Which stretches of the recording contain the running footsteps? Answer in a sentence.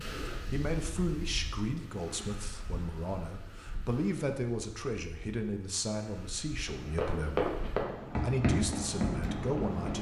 You can hear the running footsteps from 6.7 to 9.9 s.